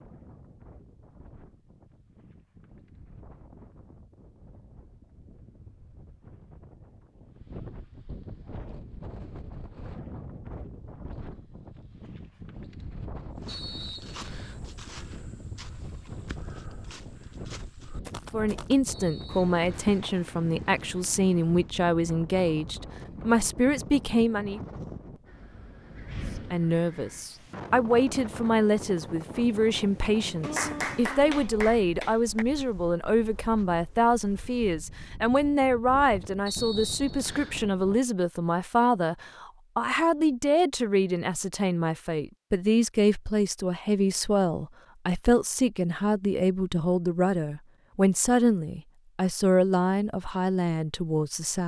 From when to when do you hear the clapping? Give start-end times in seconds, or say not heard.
30.4-32.5.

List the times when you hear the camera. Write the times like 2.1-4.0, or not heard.
not heard.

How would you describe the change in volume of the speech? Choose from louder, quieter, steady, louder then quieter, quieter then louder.
steady.